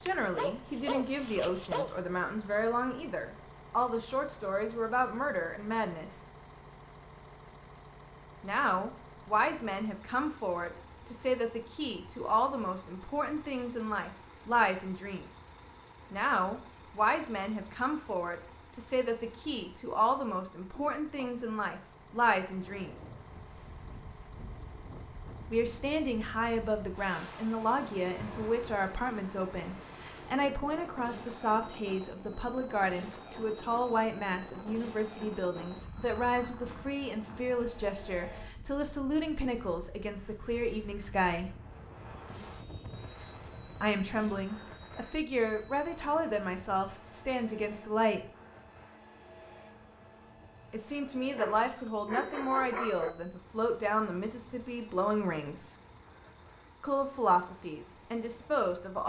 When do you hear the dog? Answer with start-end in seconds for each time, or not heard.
0.1-1.9, 51.4-53.1.